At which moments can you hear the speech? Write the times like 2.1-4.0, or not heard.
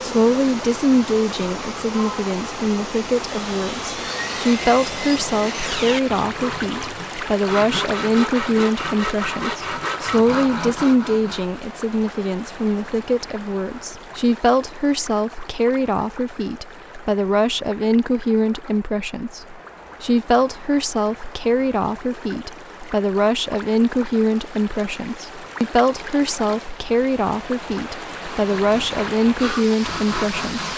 0.0-30.7.